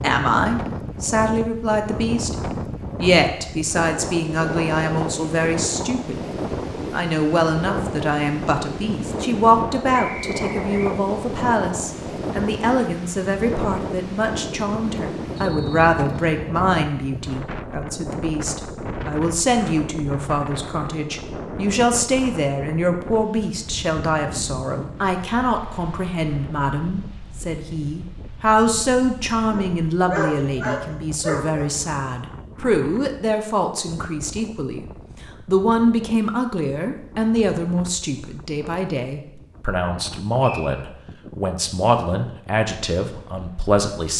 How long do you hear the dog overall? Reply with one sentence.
You can hear the dog for 2 seconds altogether.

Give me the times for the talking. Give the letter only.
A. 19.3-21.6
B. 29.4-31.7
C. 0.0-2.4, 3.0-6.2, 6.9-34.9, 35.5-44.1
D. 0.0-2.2
C.